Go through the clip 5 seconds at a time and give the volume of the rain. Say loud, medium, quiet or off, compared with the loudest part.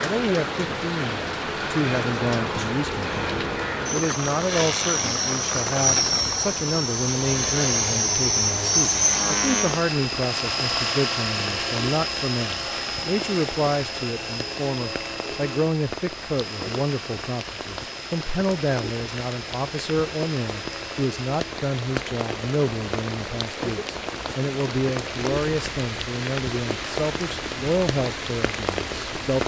loud, loud, medium, medium, loud, loud.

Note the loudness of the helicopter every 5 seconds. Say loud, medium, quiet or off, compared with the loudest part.
medium, loud, medium, quiet, quiet, quiet.